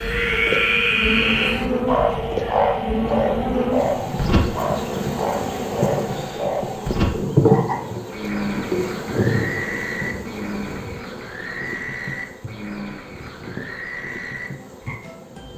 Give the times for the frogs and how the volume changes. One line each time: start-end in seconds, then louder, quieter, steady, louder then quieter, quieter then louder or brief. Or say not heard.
0.0-15.5 quieter.